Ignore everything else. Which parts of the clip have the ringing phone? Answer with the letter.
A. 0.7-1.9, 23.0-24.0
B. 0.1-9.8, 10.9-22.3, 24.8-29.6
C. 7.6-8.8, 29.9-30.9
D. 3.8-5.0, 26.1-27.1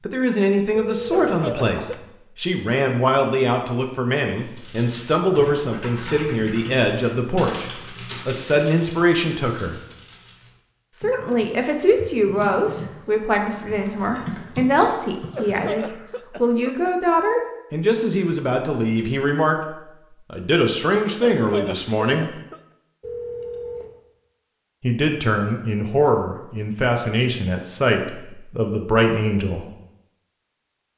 A.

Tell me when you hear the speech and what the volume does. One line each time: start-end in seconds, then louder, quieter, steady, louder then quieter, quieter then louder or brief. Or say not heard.
0.1-9.8 steady
10.9-22.3 steady
24.8-29.6 steady.